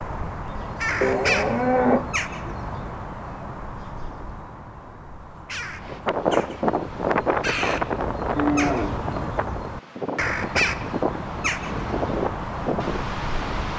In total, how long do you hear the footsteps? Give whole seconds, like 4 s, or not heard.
not heard.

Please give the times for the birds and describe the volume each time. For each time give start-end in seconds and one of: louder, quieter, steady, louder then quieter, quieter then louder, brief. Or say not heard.
0.0-13.7 quieter then louder.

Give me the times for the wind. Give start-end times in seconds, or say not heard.
5.8-13.7.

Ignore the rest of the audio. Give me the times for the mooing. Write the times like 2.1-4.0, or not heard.
1.0-2.5, 8.3-9.3.